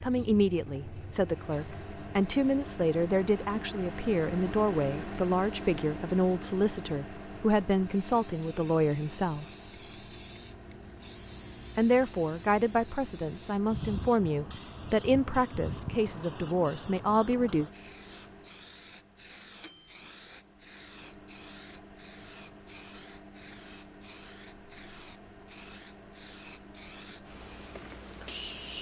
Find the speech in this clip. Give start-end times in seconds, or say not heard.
0.0-9.4, 11.8-17.7.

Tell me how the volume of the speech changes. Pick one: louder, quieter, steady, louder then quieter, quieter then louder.
steady.